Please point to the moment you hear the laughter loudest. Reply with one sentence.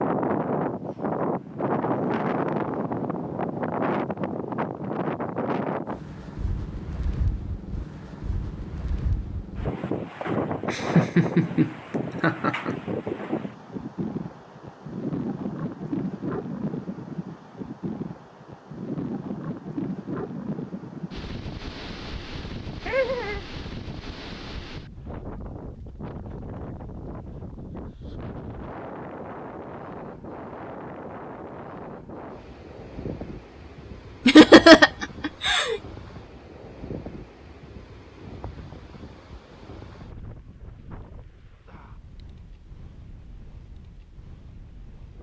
The volume of the laughter peaks at 35 seconds.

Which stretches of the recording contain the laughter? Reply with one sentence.
You can hear the laughter from 10.2 to 12.8 s, from 22.9 to 23.4 s and from 34.2 to 35.8 s.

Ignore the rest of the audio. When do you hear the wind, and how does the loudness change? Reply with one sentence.
The wind can be heard from 0.0 to 45.1 s, getting quieter.